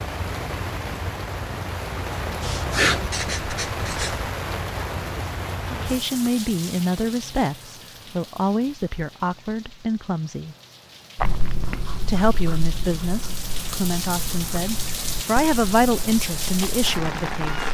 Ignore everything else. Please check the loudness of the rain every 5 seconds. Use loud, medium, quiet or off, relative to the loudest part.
loud, medium, medium, loud.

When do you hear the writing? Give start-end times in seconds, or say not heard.
2.4-4.3, 11.2-17.6.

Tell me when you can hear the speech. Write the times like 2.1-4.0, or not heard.
5.7-10.6, 12.0-17.6.